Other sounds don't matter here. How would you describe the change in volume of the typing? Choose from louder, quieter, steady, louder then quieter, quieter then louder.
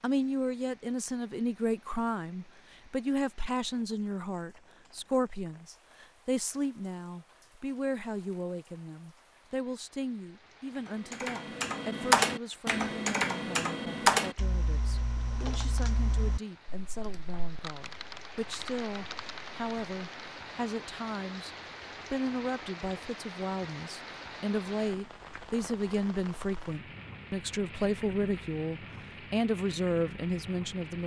quieter.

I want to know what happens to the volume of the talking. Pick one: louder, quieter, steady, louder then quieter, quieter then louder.
quieter then louder.